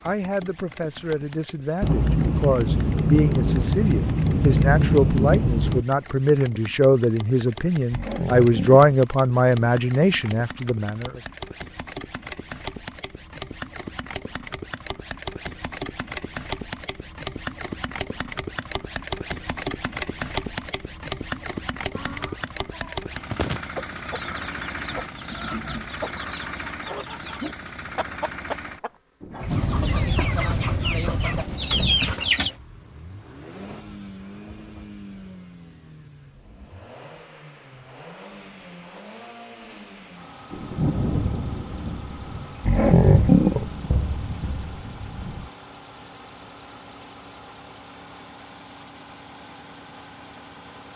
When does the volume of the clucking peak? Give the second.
32 s.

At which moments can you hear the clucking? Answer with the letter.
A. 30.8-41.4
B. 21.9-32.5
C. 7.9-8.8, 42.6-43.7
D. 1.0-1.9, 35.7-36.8
B.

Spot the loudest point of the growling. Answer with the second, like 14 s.
43 s.